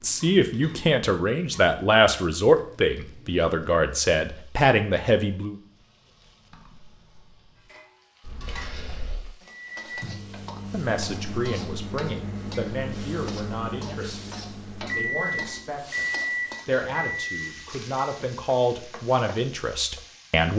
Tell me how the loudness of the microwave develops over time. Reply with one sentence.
The loudness of the microwave goes up.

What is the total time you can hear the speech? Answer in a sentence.
You can hear the speech for 15 seconds altogether.